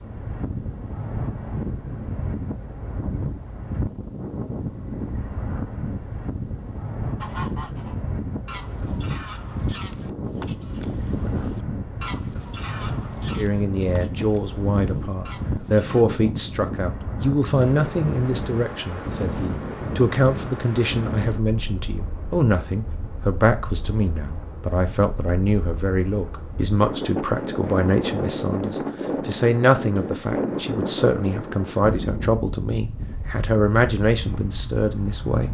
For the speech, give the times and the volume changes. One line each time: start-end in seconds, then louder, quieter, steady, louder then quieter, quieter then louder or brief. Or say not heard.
13.3-35.5 steady.